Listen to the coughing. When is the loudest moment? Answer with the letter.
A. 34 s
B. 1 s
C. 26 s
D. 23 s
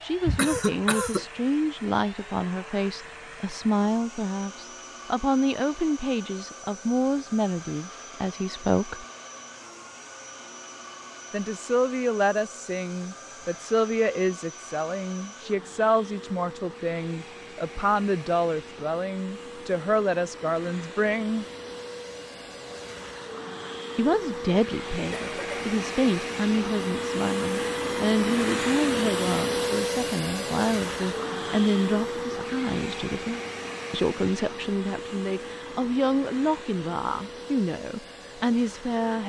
B.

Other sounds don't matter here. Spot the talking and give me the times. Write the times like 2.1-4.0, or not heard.
0.0-9.1, 11.3-21.4, 23.9-39.2.